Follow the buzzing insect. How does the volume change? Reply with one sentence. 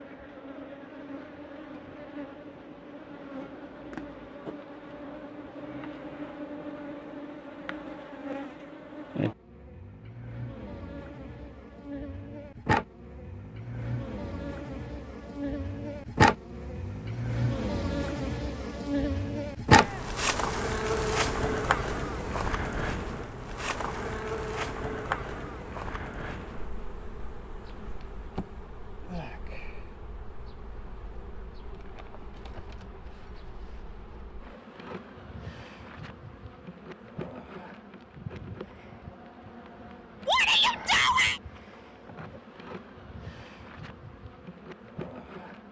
The volume of the buzzing insect goes up, then down.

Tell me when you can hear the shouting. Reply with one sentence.
You can hear the shouting from 19.7 to 20.1 s and from 40.2 to 41.4 s.